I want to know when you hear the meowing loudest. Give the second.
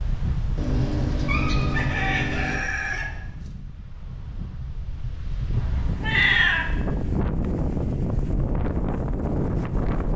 6 s.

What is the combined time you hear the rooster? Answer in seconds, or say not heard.
2 s.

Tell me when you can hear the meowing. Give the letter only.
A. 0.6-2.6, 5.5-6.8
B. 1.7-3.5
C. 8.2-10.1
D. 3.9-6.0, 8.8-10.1
A.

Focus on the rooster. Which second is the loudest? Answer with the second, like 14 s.
2 s.